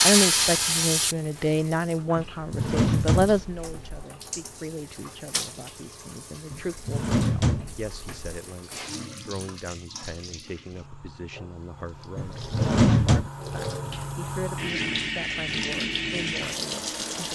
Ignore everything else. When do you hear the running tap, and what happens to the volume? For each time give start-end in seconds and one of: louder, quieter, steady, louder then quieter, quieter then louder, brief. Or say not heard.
0.0-17.3 quieter then louder.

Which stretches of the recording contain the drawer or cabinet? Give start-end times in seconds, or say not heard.
2.1-4.0, 6.5-8.4, 12.2-13.3.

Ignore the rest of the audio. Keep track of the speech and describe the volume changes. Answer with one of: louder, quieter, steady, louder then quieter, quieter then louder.
quieter.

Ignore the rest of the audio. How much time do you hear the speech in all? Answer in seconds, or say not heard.
17 s.